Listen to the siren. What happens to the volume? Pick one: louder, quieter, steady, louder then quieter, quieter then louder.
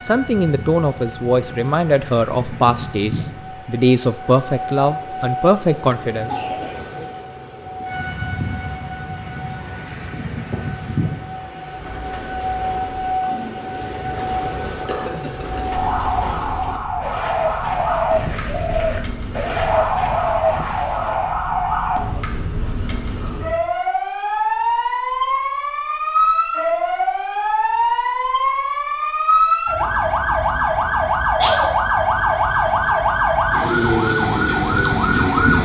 louder.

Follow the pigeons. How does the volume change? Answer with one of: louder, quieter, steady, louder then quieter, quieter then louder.
louder.